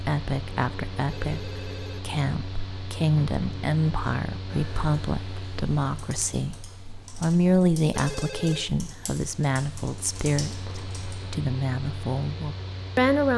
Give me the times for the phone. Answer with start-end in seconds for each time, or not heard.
1.1-2.0, 7.9-8.7.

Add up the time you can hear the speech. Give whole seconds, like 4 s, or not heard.
13 s.